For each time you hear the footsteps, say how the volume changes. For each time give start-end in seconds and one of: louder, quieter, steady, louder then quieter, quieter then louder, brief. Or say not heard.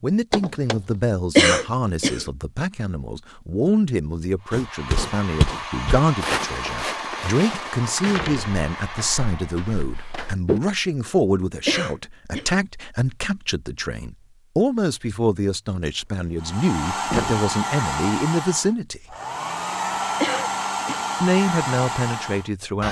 4.5-10.6 quieter.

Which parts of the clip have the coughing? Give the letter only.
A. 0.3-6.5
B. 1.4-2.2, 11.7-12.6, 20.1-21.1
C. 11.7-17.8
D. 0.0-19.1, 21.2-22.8
B.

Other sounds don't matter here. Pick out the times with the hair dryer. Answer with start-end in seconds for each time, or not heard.
4.4-10.3, 16.4-22.8.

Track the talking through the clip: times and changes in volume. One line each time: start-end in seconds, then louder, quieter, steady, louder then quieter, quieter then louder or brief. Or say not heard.
0.0-19.1 steady
21.2-22.8 brief.